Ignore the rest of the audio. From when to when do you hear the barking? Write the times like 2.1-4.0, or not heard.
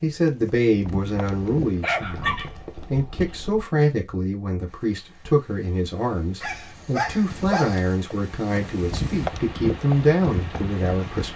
1.8-3.6, 6.4-8.0.